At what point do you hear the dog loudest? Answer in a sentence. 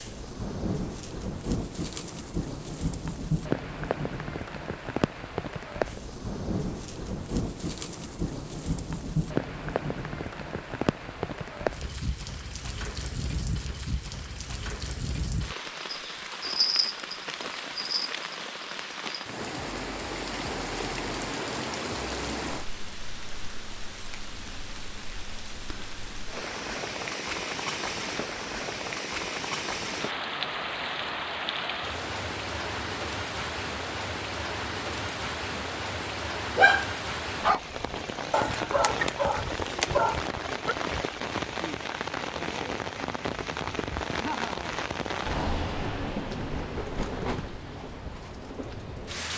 The loudest moment of the dog is at 37 seconds.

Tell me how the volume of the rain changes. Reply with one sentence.
The volume of the rain stays about the same.